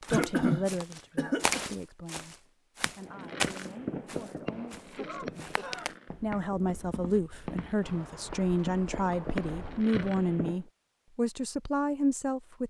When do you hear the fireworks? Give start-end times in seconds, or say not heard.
3.0-10.6.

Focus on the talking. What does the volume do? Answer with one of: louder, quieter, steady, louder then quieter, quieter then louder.
quieter then louder.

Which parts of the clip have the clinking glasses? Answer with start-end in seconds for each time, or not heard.
not heard.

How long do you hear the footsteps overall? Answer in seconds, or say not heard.
10 s.